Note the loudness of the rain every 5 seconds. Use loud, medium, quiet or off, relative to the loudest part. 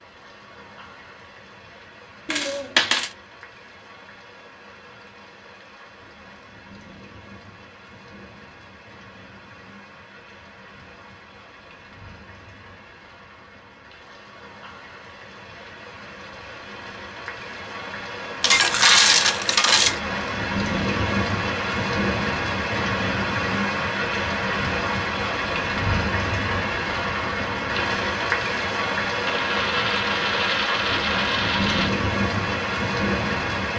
quiet, quiet, quiet, medium, loud, loud, loud.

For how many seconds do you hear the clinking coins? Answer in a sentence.
You can hear the clinking coins for 5 seconds altogether.